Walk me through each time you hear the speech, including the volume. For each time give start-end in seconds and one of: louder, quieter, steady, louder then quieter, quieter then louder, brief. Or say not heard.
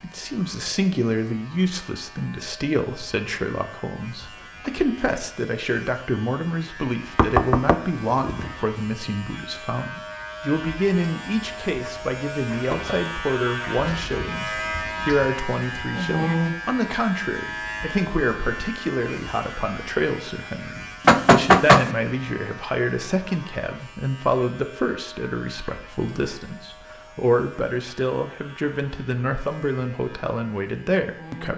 0.0-31.5 steady.